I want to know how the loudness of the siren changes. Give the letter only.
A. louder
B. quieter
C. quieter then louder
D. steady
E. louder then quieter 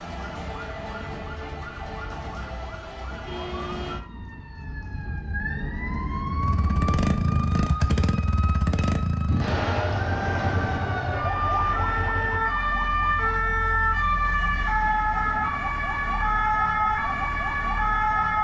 A.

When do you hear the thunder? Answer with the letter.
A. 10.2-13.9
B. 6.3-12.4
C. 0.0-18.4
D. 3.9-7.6
D.